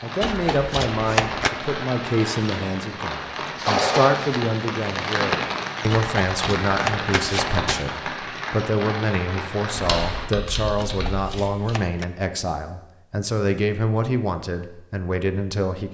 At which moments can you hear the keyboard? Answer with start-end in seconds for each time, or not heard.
9.8-11.7.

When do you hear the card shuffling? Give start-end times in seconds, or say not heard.
0.2-1.5, 5.9-7.8, 10.8-12.1.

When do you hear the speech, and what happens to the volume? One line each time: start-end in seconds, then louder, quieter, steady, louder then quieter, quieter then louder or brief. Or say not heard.
0.0-15.8 steady.